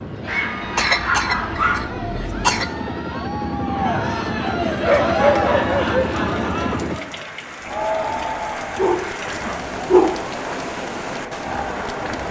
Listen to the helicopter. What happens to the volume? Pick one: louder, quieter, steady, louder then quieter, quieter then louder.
louder.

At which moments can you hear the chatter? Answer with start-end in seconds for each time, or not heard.
0.1-12.2.